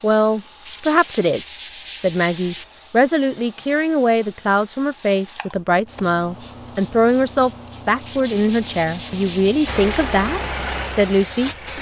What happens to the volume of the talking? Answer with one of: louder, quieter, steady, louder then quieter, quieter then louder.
steady.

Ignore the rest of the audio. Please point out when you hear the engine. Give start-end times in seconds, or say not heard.
9.7-11.7.